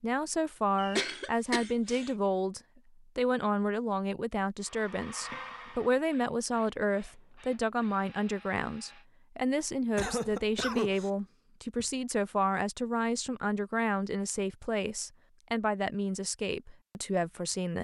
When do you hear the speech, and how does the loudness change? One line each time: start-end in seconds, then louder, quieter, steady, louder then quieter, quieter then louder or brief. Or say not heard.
0.0-17.7 steady.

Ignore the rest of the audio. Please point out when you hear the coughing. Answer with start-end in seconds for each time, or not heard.
0.8-2.1, 9.9-11.1.